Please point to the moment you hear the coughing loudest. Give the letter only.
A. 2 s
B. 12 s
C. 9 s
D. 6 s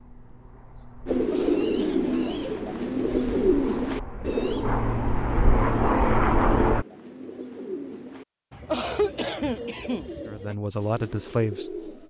C.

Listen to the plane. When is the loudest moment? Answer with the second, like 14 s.
6 s.